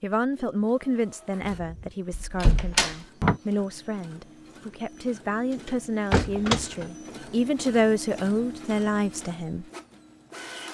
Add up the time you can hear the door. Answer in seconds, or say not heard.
3 s.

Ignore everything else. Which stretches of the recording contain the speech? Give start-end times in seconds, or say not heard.
0.0-9.7.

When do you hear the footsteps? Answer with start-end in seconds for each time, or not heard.
not heard.